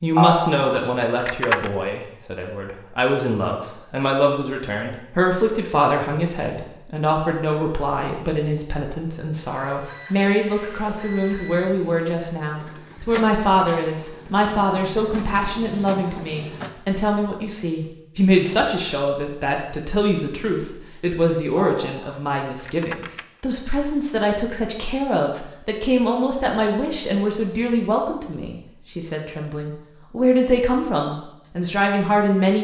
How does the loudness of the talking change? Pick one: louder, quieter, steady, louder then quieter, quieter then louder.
steady.